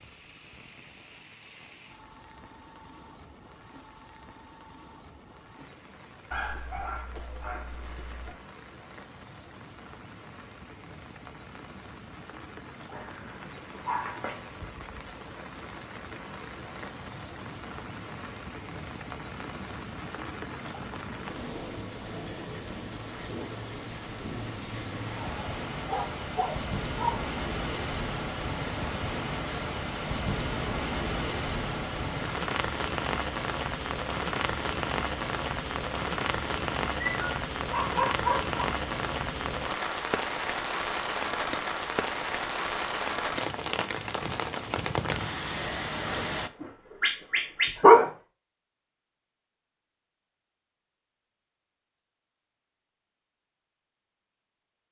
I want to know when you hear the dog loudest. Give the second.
48 s.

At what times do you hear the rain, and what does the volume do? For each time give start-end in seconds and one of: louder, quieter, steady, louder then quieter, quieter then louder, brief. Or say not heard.
0.0-46.5 louder.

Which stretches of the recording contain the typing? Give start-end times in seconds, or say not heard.
not heard.